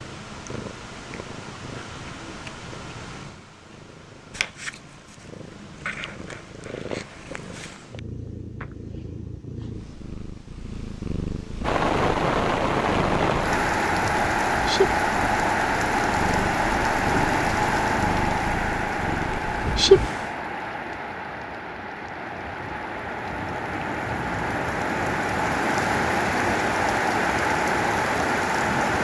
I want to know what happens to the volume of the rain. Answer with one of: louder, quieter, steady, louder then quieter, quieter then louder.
quieter then louder.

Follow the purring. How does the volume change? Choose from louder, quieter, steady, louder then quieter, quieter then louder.
louder.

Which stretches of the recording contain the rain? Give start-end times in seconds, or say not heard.
11.6-28.9.